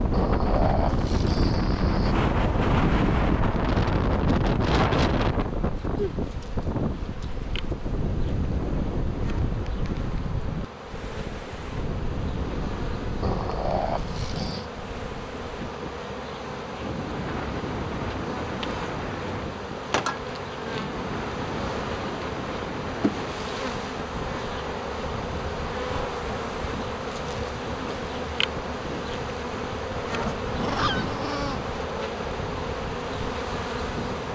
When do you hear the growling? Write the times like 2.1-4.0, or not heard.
0.1-2.1, 13.2-14.7, 30.1-31.6.